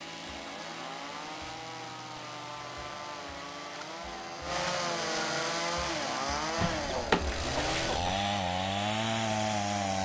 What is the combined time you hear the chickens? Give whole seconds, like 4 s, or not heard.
2 s.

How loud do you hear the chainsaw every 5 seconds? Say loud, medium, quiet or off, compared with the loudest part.
medium, loud.